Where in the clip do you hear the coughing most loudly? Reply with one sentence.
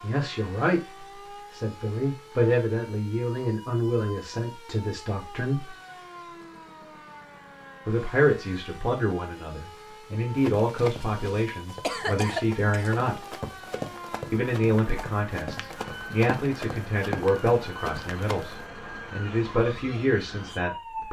The volume of the coughing peaks at 12 seconds.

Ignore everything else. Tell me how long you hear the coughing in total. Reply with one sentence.
You can hear the coughing for 2 seconds altogether.